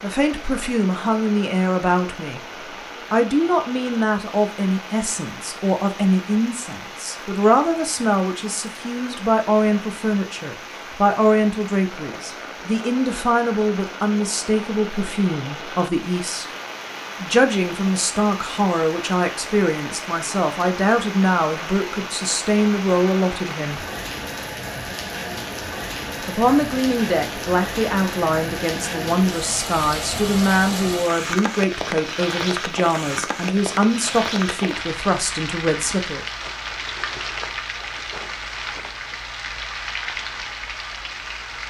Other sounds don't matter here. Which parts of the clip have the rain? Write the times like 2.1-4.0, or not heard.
0.0-41.6.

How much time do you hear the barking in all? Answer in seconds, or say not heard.
not heard.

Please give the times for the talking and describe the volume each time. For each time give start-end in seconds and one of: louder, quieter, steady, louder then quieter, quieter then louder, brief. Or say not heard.
0.0-2.4 brief
3.1-16.4 steady
17.2-23.9 steady
26.2-36.2 steady.